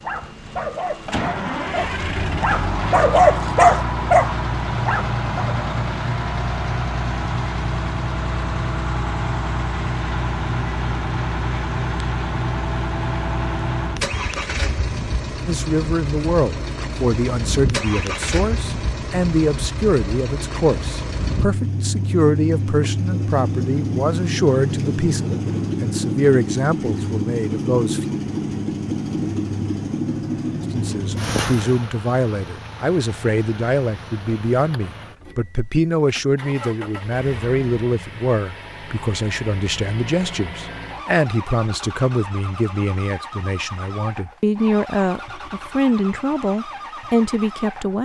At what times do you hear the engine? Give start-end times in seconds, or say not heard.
0.0-47.9.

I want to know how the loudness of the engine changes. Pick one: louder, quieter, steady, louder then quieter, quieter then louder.
quieter.